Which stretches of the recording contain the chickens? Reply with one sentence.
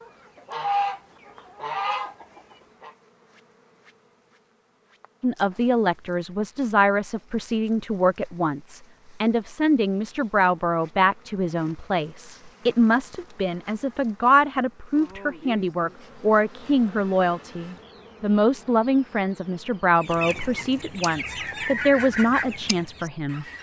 You can hear the chickens from 0.0 to 2.9 s and from 20.0 to 23.5 s.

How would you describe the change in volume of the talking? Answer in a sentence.
The loudness of the talking stays about the same.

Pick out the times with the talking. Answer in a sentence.
The talking can be heard from 5.2 to 23.4 s.